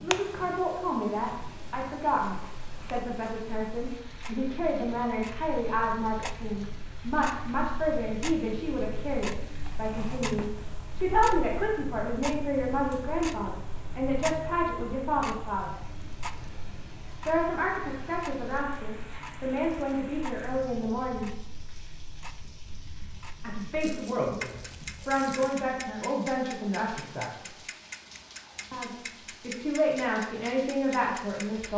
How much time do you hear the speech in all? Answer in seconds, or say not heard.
27 s.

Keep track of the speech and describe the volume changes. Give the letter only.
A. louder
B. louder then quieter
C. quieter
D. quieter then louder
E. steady
E.